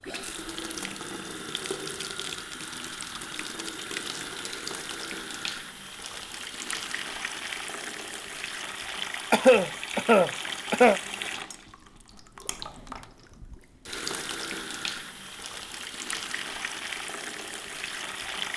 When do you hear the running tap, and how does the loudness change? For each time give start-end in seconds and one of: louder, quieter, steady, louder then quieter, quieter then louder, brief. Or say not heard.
0.0-18.5 steady.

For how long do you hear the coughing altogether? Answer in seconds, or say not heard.
2 s.